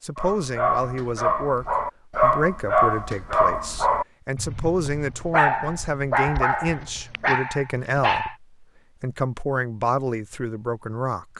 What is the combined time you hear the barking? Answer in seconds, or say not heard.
8 s.